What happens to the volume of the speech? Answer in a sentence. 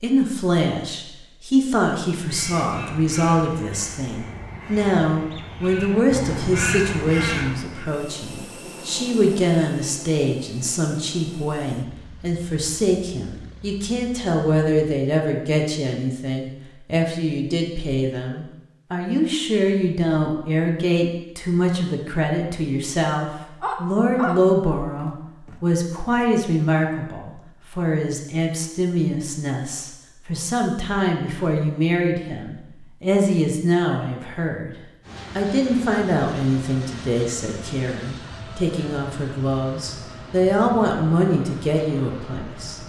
The volume of the speech stays about the same.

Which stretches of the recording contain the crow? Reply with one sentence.
You can hear the crow from 2.1 to 7.8 s.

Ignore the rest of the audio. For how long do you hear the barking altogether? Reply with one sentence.
The barking can be heard for 2 seconds in total.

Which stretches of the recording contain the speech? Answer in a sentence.
The speech can be heard from 0.0 to 34.7 s and from 35.4 to 42.8 s.